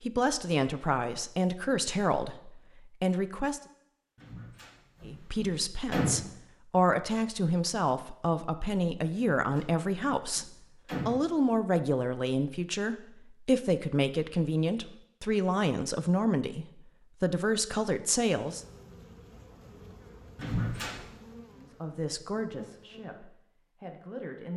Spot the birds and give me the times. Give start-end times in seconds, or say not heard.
not heard.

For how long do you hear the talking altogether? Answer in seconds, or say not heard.
20 s.